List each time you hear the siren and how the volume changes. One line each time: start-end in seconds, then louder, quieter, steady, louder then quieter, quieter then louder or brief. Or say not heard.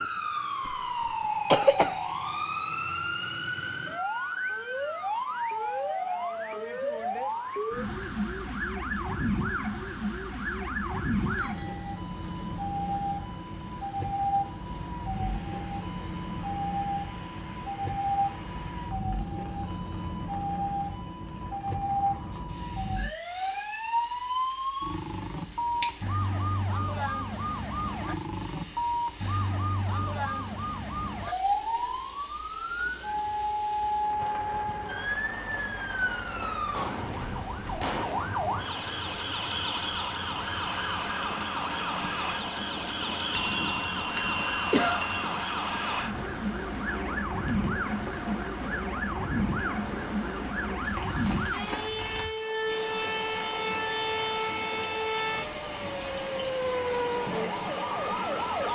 0.0-58.7 steady.